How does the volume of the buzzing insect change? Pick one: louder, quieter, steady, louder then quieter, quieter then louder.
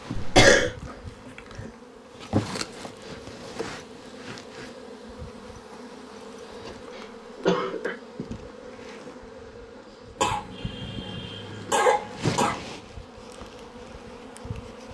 quieter then louder.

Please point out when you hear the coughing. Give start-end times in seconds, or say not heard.
0.1-0.7, 7.5-8.0, 10.2-12.6.